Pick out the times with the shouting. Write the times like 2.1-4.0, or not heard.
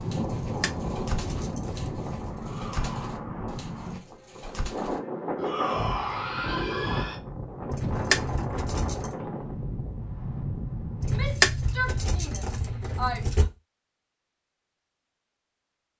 2.4-3.0, 5.3-7.2, 11.0-13.4.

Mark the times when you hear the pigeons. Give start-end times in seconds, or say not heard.
0.0-7.0.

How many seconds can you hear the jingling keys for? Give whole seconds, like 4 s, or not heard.
6 s.